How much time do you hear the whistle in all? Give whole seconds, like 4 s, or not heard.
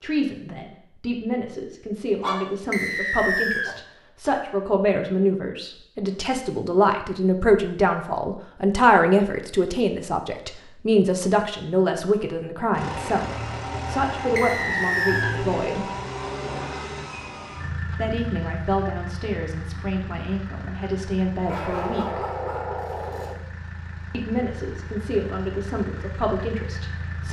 2 s.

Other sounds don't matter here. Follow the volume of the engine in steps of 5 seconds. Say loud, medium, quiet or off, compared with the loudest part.
off, off, loud, loud, medium, medium.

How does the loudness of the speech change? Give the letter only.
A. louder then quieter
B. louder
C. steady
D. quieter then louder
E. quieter
A.